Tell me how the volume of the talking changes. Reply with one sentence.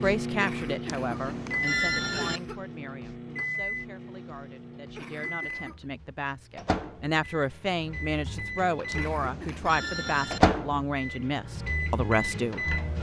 The loudness of the talking goes down, then up.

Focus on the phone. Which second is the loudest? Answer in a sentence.
The volume of the phone peaks at 2 seconds.